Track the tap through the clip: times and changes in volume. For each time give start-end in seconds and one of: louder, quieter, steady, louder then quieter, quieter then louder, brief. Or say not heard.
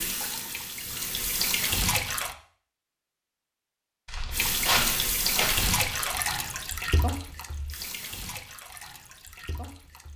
0.0-2.4 brief
4.3-10.1 quieter.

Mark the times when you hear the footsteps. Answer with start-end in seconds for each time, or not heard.
4.0-6.2.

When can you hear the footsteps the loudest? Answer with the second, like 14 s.
5 s.